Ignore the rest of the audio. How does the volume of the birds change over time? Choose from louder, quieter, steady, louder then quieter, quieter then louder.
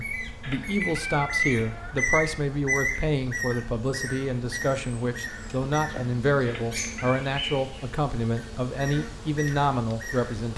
quieter.